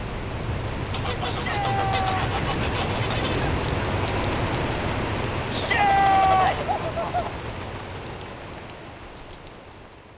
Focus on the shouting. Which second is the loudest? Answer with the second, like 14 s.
6 s.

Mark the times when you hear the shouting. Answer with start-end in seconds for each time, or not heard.
1.2-2.2, 5.5-6.8.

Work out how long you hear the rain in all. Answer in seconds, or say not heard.
10 s.